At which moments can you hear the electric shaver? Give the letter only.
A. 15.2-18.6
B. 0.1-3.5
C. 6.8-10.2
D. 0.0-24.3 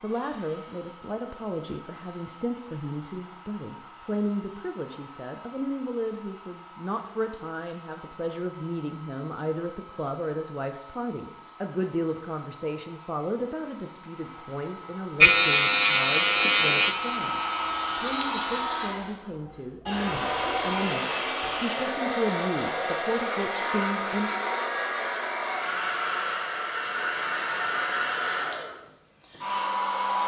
A.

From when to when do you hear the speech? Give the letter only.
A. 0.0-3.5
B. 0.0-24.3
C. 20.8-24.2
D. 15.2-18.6
B.